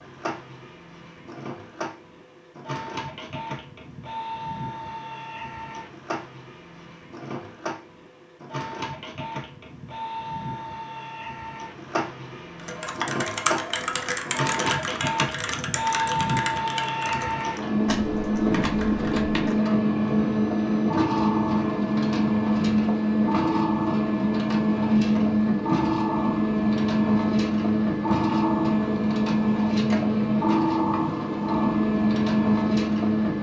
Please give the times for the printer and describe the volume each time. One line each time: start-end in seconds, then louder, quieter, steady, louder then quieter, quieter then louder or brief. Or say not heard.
0.0-33.3 louder.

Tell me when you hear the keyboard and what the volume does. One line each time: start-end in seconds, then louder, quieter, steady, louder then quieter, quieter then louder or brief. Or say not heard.
12.6-19.6 quieter.